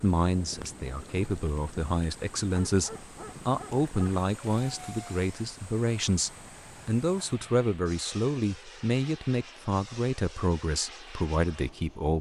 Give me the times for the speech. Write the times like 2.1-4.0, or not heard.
0.0-12.1.